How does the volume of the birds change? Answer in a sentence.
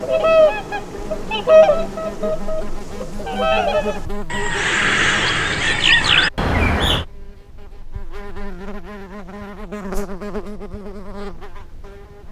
The loudness of the birds goes down, then up.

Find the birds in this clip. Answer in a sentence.
The birds can be heard from 0.0 to 7.0 s.